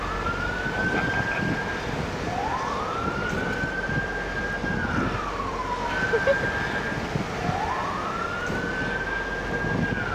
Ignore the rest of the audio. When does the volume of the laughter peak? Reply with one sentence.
The loudest moment of the laughter is at 6 seconds.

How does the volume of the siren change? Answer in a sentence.
The volume of the siren stays about the same.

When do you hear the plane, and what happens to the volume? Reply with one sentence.
The plane can be heard from 0.0 to 10.1 s, at a steady volume.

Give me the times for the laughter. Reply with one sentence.
You can hear the laughter from 0.8 to 1.6 s and from 5.8 to 6.5 s.